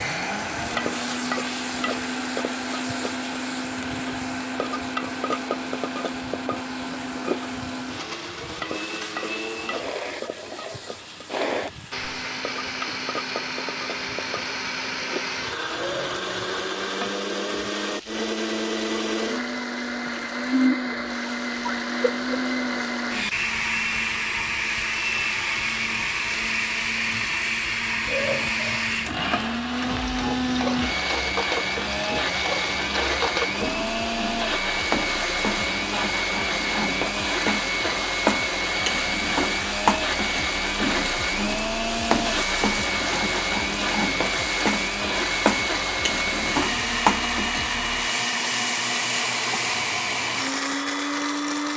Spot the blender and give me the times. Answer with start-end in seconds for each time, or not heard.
0.0-51.7.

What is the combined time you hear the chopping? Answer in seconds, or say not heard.
not heard.